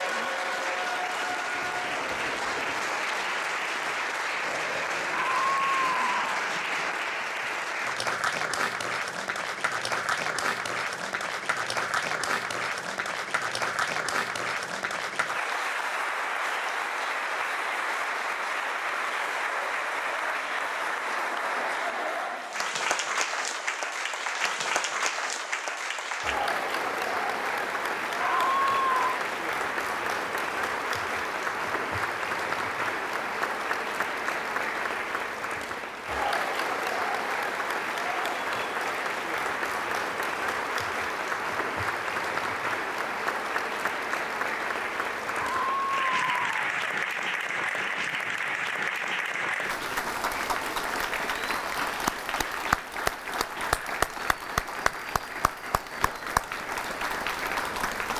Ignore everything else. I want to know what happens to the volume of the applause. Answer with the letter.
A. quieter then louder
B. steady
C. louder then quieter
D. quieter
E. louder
B.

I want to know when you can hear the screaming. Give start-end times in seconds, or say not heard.
5.1-6.5, 28.1-29.2, 45.4-46.8.